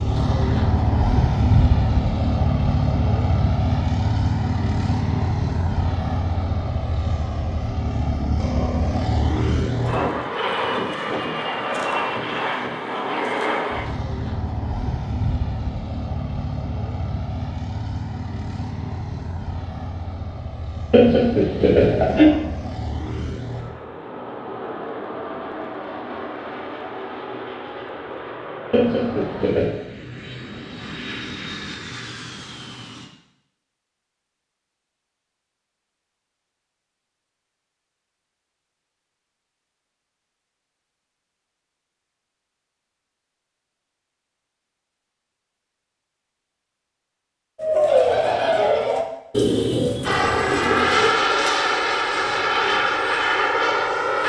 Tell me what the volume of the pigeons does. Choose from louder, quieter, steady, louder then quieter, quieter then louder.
quieter.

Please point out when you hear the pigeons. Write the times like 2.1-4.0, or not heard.
47.5-52.8.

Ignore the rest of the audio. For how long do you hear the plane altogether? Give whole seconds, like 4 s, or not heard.
37 s.